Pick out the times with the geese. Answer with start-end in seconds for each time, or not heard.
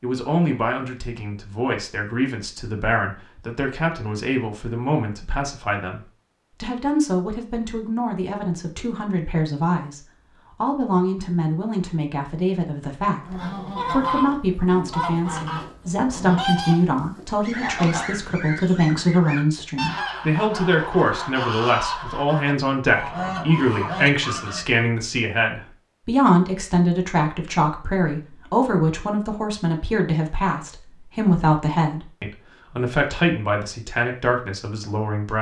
13.1-24.9.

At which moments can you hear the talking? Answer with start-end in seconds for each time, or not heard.
0.0-35.3.